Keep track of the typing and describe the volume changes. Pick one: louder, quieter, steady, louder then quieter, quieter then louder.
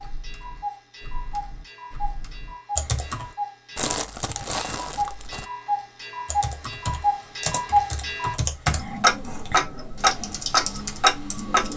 louder.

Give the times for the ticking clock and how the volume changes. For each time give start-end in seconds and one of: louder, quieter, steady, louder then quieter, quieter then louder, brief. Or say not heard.
0.0-11.7 louder.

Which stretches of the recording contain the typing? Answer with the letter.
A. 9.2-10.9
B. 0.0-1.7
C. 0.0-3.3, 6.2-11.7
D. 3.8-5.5
C.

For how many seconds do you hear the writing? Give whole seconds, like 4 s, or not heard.
not heard.